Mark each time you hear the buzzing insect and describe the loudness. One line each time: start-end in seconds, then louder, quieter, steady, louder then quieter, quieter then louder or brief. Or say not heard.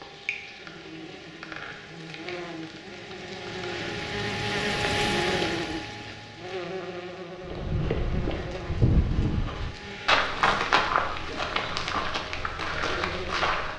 0.0-13.7 louder then quieter.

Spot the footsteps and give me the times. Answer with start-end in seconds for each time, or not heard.
7.4-13.7.